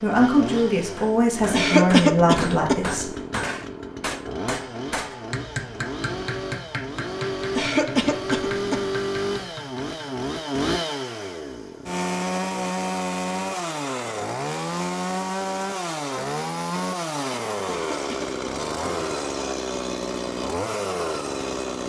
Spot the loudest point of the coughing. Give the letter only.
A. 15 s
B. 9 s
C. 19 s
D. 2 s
D.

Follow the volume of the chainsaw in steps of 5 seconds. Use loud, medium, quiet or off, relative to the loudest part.
medium, loud, loud, loud, loud.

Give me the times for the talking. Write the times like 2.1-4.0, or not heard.
0.0-3.1.